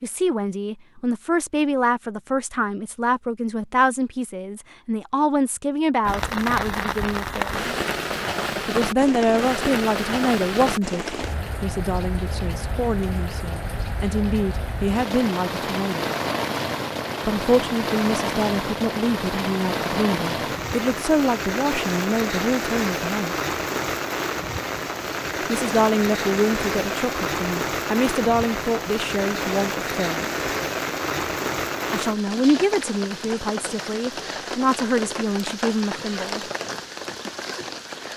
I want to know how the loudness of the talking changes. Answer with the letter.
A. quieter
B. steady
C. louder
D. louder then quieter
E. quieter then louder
B.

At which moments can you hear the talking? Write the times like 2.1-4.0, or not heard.
0.0-7.7, 8.7-16.1, 17.2-23.4, 25.4-30.3, 31.9-36.5.